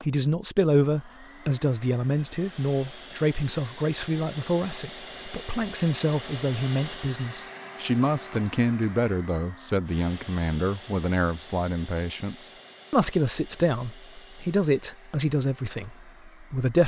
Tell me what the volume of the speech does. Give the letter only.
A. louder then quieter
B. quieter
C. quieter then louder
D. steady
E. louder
D.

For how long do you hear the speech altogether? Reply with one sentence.
You can hear the speech for 17 seconds altogether.